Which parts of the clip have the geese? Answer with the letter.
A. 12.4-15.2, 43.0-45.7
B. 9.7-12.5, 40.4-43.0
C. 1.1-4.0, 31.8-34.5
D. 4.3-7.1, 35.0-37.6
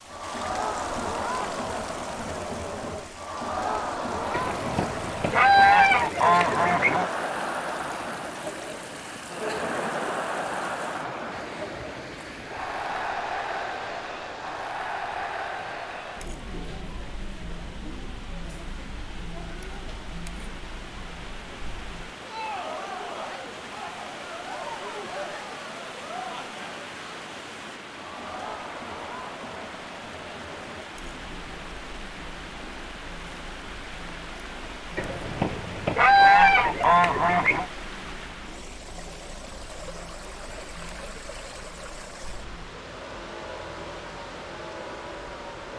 D.